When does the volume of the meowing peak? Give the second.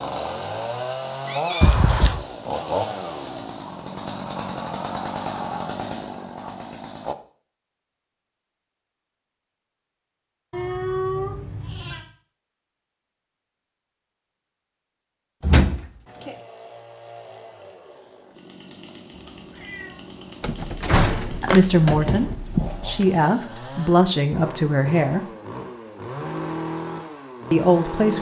11 s.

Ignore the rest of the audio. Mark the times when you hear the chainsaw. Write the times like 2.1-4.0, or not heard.
0.0-7.2, 16.1-28.1.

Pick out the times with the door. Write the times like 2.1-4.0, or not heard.
1.6-2.2, 15.4-16.4, 20.4-23.1.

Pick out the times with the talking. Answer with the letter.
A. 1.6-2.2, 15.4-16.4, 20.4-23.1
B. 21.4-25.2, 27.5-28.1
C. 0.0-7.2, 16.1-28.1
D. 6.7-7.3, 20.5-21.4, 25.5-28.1
B.